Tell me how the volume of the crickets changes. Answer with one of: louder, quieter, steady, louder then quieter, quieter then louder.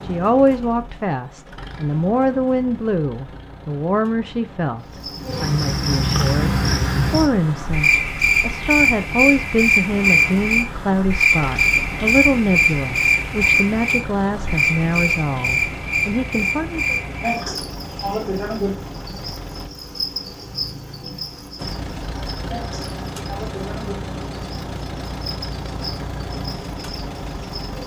quieter.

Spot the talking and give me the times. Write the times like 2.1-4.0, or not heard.
0.0-16.9.